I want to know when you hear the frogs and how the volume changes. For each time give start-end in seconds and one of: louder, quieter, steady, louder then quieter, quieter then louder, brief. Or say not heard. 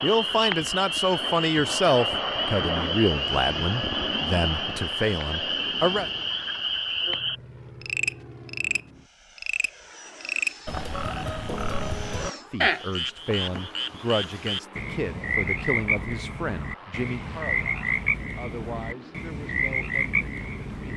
0.0-20.9 steady.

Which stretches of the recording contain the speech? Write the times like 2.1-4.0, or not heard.
0.0-6.0, 12.5-20.9.